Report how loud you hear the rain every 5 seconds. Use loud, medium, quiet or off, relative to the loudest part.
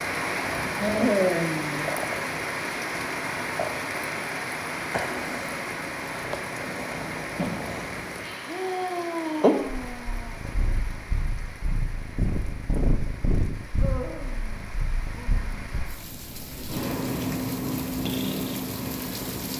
loud, medium, quiet, medium.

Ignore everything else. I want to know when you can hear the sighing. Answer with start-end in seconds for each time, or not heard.
0.8-1.9, 8.2-10.4, 13.8-15.4.